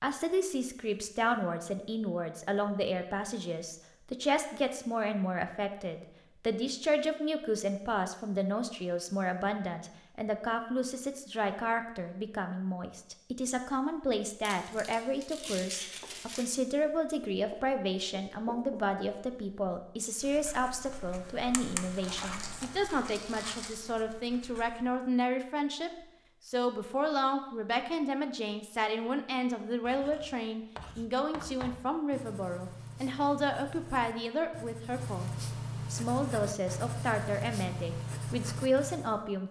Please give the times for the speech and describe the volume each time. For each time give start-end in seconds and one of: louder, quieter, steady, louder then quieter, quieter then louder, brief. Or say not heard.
0.0-39.4 steady.